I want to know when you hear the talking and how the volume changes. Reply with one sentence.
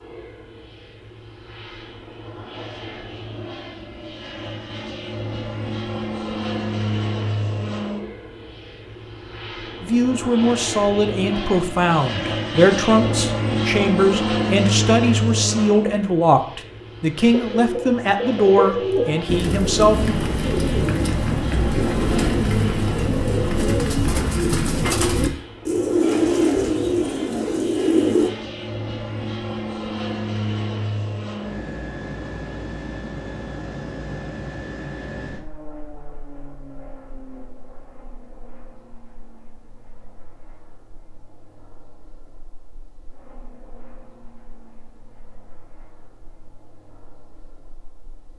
You can hear the talking from 9.8 to 20.1 s, at a steady volume.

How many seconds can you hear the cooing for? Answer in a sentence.
The cooing can be heard for 11 seconds in total.